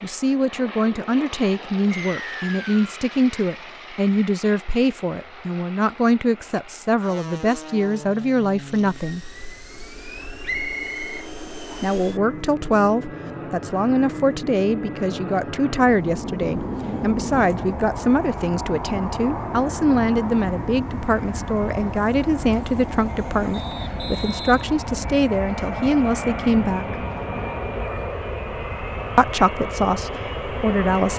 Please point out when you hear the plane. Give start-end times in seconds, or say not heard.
0.0-31.1.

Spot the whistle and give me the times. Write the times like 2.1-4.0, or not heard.
1.9-2.9, 10.4-11.8, 23.5-24.6.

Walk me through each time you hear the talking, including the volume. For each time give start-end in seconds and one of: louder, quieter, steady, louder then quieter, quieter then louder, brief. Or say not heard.
0.0-9.2 steady
11.8-27.1 steady
29.1-31.1 brief.